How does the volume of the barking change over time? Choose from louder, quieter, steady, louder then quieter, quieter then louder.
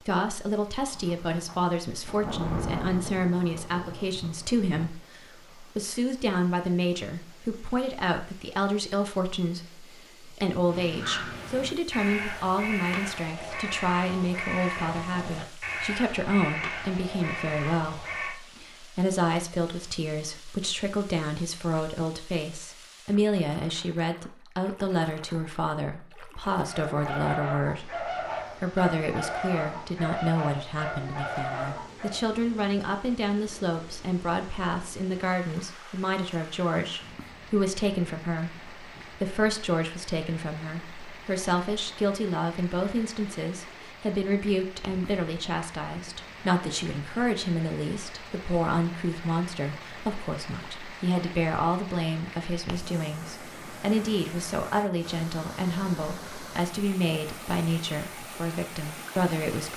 steady.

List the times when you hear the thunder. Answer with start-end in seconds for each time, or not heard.
0.9-4.9.